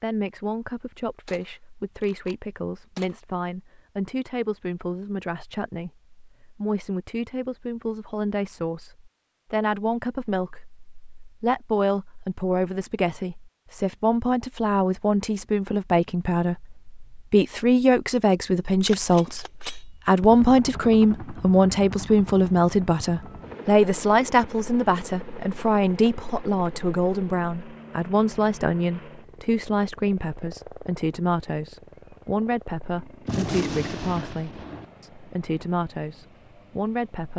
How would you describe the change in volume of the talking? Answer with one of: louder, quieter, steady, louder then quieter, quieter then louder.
louder then quieter.